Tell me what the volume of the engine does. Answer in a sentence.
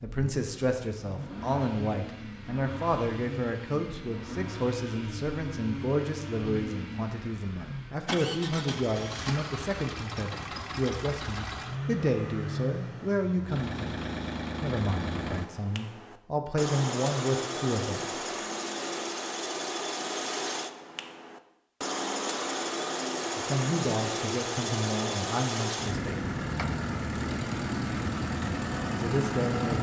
The volume of the engine goes up.